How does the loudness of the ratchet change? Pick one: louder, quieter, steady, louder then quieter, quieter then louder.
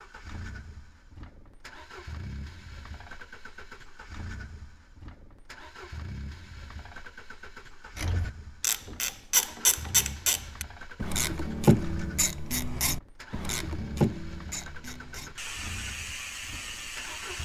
quieter.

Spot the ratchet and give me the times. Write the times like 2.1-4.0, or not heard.
8.0-17.4.